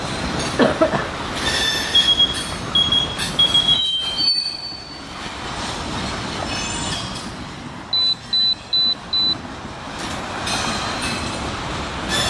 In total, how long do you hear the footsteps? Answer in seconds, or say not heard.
not heard.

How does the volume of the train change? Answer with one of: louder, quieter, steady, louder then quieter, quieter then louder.
quieter then louder.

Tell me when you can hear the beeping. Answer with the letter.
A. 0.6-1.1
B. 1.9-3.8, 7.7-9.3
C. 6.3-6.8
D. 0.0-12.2
B.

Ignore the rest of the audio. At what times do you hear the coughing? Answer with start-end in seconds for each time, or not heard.
0.6-1.1.